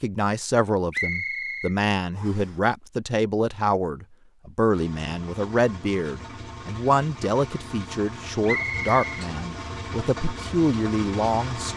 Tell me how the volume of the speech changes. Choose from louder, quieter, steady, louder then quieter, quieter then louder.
steady.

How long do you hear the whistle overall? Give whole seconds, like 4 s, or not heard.
2 s.